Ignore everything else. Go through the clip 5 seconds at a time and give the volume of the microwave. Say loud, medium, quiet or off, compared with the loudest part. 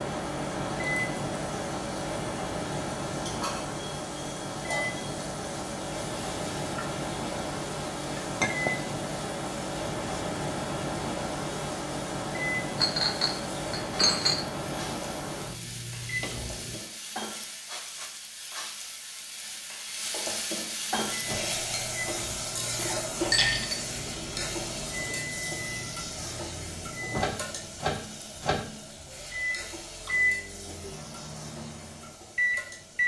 loud, loud, loud, medium, medium, medium, loud.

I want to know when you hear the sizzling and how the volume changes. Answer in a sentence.
You can hear the sizzling from 0.0 to 33.0 s, getting louder then quieter.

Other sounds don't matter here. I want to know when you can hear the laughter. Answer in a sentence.
The laughter can't be heard in this clip.